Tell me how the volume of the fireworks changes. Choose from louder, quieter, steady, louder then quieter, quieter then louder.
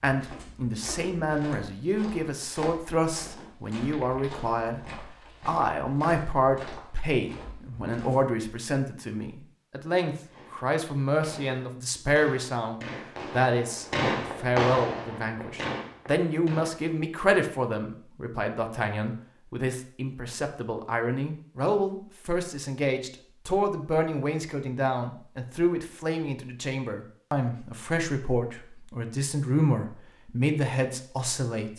louder then quieter.